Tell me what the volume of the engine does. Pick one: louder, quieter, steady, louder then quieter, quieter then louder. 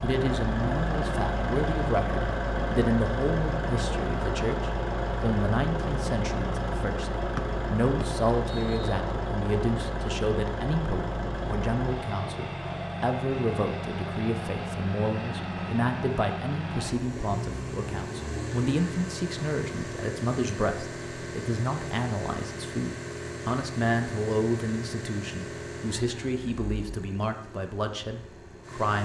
quieter.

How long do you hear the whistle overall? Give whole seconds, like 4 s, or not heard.
2 s.